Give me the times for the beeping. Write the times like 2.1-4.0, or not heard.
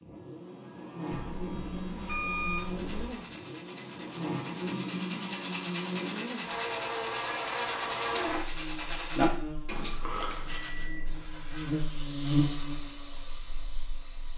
1.1-3.1, 10.2-11.2.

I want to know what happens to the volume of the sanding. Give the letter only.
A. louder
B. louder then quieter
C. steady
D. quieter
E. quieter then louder
A.